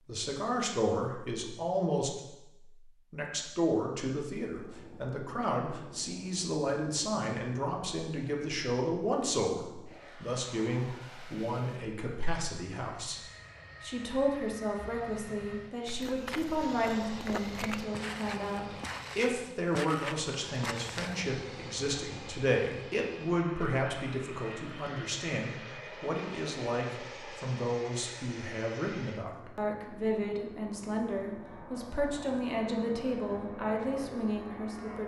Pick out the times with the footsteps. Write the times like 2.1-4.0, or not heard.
15.8-21.2.